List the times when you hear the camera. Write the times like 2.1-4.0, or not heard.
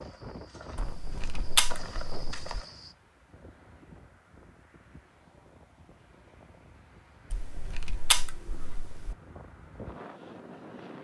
0.8-2.5, 7.3-9.2.